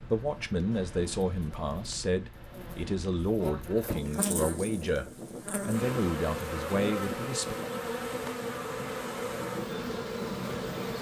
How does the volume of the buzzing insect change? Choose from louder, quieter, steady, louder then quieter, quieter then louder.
louder.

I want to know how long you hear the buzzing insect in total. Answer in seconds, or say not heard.
11 s.